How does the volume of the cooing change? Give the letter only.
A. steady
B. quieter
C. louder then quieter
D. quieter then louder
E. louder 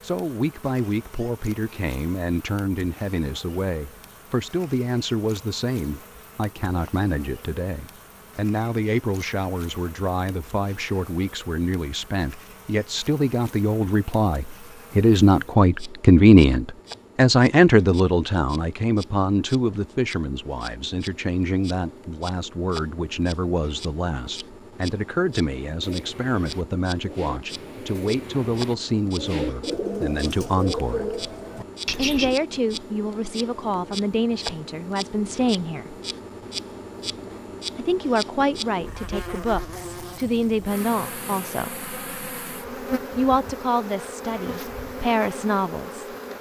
E.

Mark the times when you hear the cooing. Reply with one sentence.
You can hear the cooing from 25.8 to 32.4 s.